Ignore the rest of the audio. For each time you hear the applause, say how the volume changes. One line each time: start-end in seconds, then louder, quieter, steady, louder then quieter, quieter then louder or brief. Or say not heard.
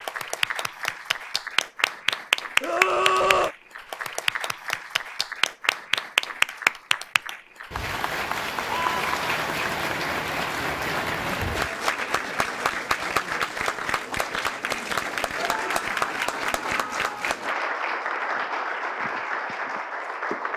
0.0-20.5 steady.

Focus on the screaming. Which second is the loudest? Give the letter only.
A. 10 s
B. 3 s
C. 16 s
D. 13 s
B.